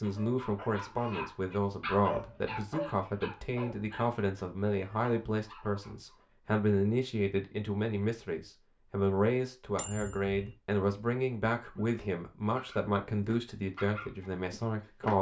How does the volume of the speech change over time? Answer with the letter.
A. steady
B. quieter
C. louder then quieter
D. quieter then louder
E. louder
A.